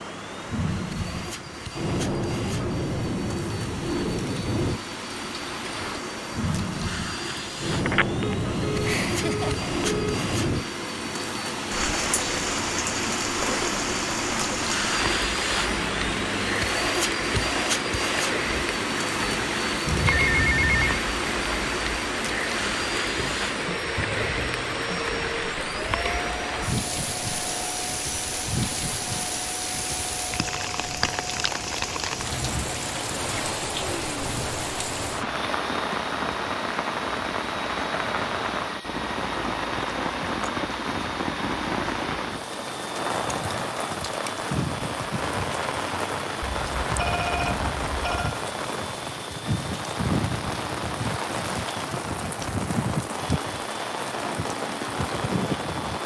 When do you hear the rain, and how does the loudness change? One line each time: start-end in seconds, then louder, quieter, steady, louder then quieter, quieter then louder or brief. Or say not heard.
0.0-56.0 steady.